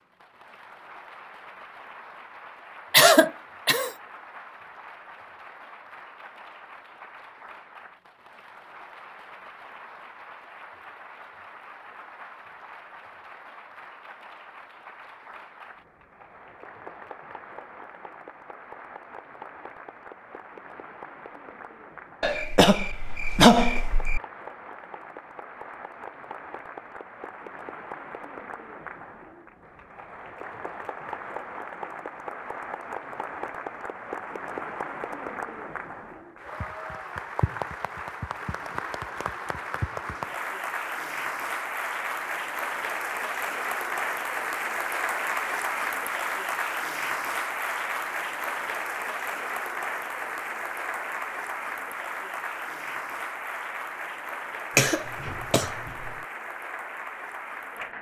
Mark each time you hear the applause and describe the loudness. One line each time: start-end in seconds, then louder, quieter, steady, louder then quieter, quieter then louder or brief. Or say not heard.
0.0-57.9 louder.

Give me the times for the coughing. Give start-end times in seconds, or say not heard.
2.9-3.9, 22.2-24.2, 54.8-56.1.